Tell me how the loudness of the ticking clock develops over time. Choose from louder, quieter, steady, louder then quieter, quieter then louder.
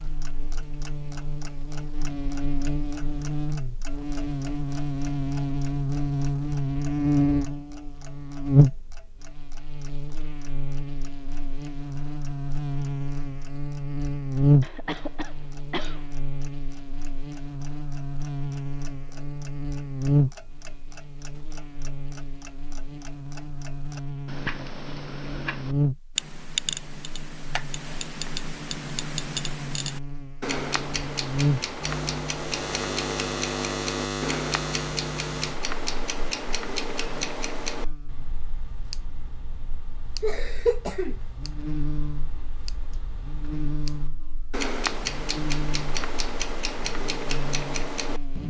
quieter then louder.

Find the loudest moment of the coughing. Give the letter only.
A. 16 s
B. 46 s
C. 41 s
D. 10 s
C.